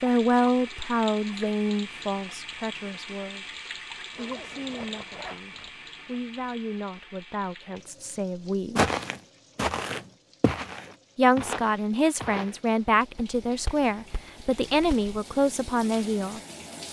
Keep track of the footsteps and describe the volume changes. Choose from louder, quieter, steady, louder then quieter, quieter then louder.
quieter then louder.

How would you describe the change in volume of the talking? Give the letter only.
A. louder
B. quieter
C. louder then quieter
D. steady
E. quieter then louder
E.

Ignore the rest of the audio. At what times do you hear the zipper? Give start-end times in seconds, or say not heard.
4.1-6.1.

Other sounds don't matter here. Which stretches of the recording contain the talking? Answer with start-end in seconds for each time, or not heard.
0.0-8.8, 11.2-16.4.